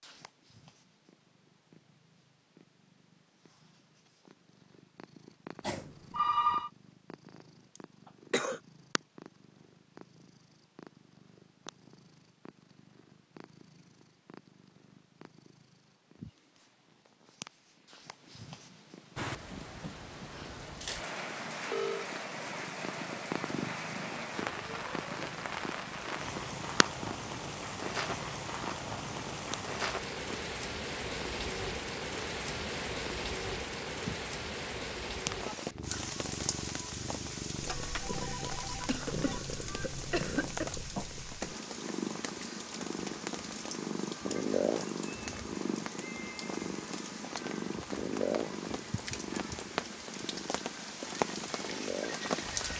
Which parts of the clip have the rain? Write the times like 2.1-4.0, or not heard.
19.1-52.7.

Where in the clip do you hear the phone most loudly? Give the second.
6 s.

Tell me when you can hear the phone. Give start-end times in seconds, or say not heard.
5.6-6.7, 21.5-22.1, 37.6-39.4.